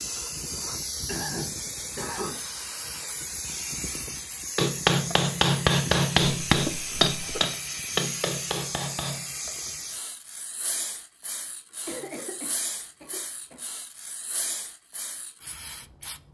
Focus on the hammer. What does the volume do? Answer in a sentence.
The volume of the hammer goes down.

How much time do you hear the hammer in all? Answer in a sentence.
You can hear the hammer for 5 seconds altogether.